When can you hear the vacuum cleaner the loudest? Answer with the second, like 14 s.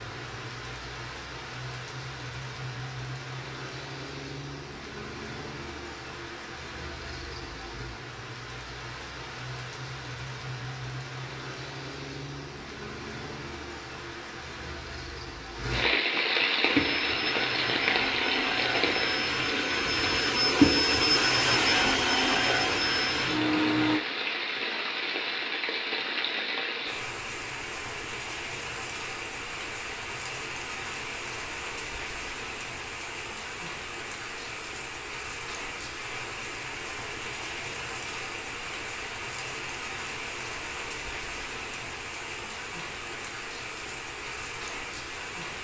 21 s.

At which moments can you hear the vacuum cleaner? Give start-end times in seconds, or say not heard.
16.6-24.0.